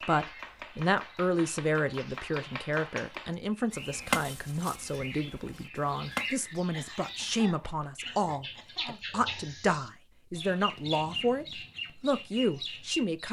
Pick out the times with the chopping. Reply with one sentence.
You can hear the chopping from 0.0 to 6.4 s.